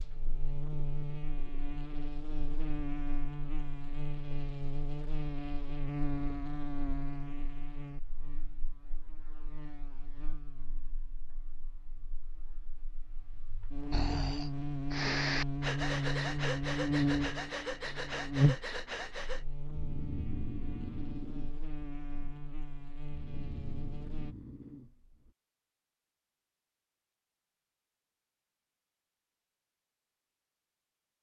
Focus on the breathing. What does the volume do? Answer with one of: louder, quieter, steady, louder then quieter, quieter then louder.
quieter.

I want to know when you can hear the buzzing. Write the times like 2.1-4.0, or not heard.
0.0-24.4.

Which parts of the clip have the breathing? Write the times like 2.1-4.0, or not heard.
13.9-25.4.